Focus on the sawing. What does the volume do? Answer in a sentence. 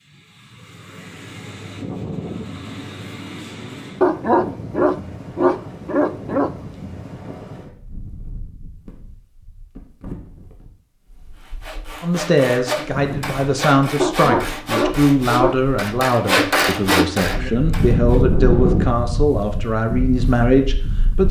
The volume of the sawing goes up.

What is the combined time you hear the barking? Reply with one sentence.
The barking can be heard for 4 seconds in total.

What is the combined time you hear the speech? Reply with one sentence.
You can hear the speech for 9 seconds altogether.